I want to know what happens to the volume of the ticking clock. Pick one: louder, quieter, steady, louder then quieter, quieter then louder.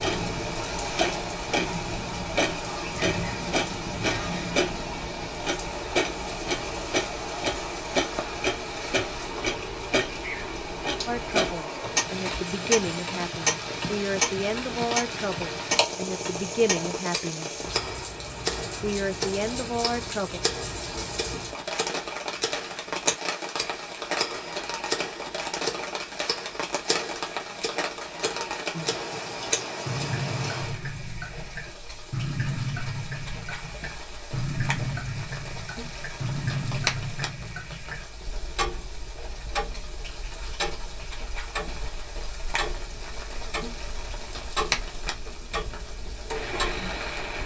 quieter.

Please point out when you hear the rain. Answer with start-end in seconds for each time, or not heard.
0.0-47.4.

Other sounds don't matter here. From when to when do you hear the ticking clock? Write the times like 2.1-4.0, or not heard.
0.0-47.4.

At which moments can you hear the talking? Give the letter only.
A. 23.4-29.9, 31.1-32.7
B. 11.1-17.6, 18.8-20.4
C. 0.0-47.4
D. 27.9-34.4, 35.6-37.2
B.